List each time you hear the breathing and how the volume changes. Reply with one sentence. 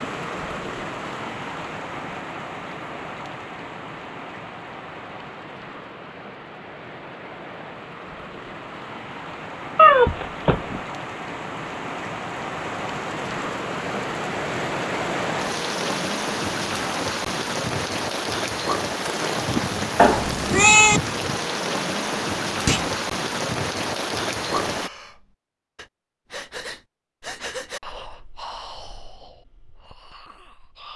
You can hear the breathing from 24.7 to 30.9 s, getting louder then quieter.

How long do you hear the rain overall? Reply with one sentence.
You can hear the rain for 25 seconds altogether.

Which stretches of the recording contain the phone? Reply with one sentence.
You can't hear the phone here.